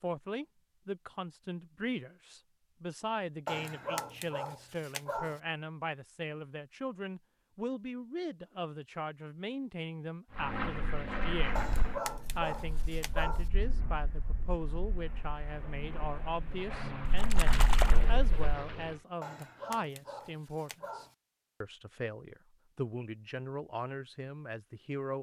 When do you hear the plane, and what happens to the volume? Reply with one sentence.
The plane can be heard from 10.3 to 19.1 s, getting quieter then louder.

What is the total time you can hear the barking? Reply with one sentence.
The barking can be heard for 6 seconds in total.